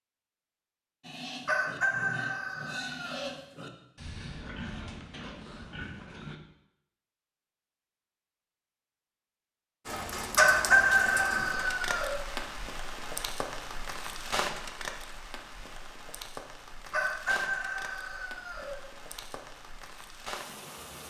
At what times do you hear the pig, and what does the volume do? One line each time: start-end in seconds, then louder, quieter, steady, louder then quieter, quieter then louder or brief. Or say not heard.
1.0-6.4 steady.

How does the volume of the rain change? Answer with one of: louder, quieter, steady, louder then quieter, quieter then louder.
quieter.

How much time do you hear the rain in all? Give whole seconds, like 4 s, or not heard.
11 s.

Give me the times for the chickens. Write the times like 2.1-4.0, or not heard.
1.4-3.3, 10.3-12.2, 16.9-18.8.